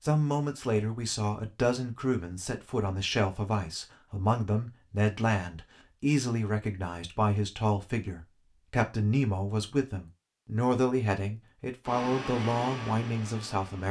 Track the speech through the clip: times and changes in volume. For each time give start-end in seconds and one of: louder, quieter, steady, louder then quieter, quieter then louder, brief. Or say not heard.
0.0-13.8 steady.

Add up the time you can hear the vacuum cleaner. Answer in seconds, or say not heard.
2 s.